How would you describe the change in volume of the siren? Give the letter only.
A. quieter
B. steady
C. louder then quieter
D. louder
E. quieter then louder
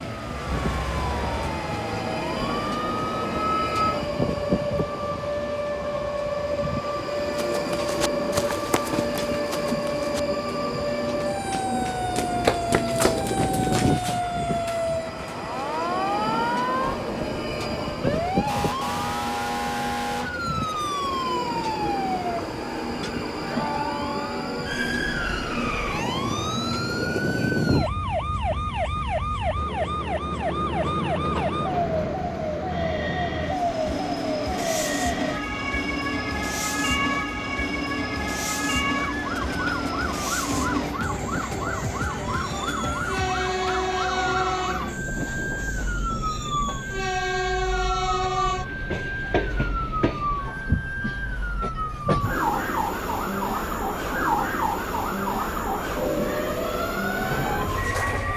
B.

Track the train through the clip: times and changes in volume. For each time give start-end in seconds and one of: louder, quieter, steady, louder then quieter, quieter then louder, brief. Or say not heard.
0.0-58.3 steady.